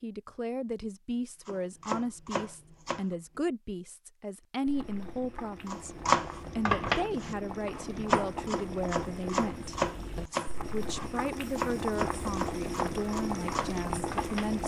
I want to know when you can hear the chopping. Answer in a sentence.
You can hear the chopping from 1.4 to 3.0 s and from 5.7 to 14.6 s.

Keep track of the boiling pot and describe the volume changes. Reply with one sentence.
The volume of the boiling pot goes up.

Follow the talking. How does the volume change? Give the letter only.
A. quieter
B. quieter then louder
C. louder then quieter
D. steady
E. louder
D.